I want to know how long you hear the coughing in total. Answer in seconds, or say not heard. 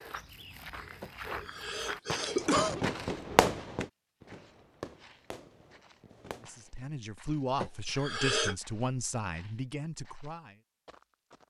3 s.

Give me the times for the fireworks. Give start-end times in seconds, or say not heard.
2.1-6.8.